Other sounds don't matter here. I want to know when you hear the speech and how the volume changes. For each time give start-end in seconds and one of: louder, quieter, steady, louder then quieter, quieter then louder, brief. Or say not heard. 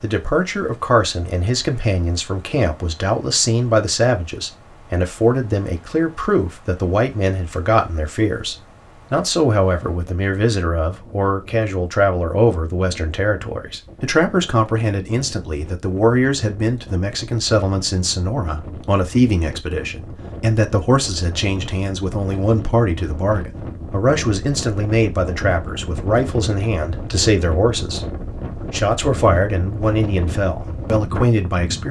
0.0-31.8 steady.